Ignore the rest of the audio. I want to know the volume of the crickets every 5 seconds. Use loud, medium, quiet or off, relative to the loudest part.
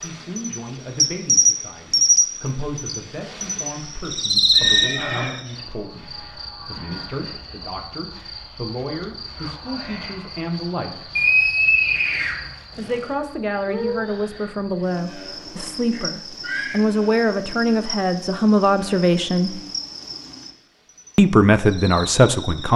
loud, quiet, quiet, quiet, quiet.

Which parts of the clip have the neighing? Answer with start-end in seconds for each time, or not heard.
4.5-5.3, 11.2-13.1, 15.9-16.8.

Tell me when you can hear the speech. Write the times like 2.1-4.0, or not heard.
0.0-11.1, 12.8-19.6, 21.1-22.7.